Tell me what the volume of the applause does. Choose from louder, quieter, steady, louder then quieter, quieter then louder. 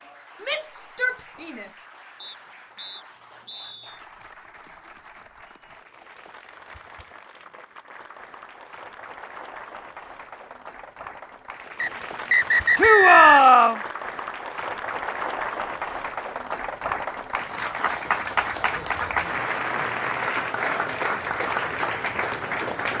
louder.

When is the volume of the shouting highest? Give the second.
13 s.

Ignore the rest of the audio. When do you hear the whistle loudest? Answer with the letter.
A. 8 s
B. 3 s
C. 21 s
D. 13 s
D.